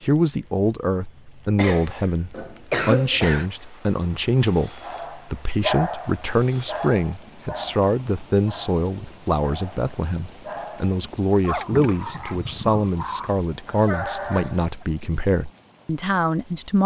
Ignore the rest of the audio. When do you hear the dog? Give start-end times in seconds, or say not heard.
4.8-14.6.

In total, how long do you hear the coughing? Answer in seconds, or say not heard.
2 s.